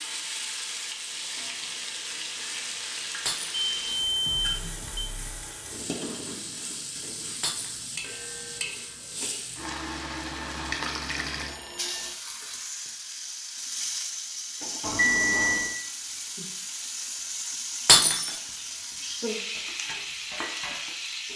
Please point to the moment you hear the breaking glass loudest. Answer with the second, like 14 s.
18 s.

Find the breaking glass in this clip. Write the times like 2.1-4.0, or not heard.
3.2-3.7, 7.4-7.9, 17.9-18.4.